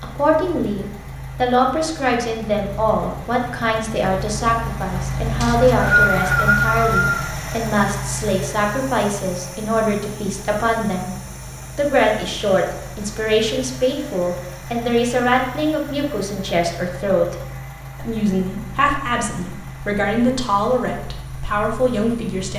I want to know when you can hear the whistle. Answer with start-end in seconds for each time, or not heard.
5.4-7.3.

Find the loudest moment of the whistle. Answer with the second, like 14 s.
6 s.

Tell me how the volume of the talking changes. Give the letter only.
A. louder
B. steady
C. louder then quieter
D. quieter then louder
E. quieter
B.